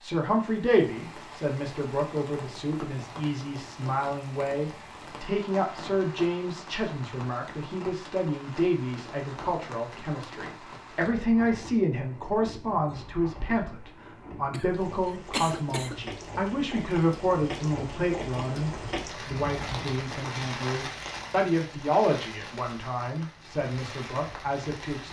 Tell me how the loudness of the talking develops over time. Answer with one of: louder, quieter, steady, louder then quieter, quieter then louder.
steady.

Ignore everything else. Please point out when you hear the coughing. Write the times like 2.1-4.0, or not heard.
14.5-16.0.